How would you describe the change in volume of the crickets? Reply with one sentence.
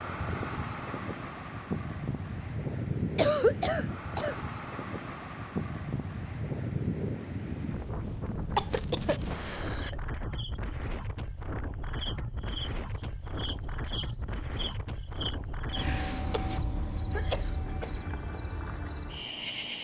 The loudness of the crickets goes up, then down.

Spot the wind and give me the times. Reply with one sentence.
The wind can be heard from 0.0 to 16.0 s.